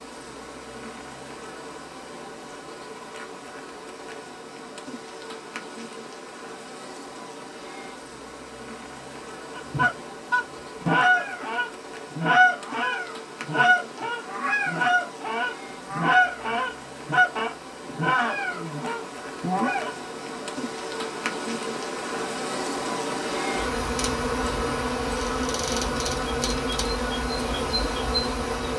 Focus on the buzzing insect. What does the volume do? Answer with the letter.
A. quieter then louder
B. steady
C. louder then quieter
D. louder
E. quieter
D.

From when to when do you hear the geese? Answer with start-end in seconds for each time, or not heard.
9.6-19.9.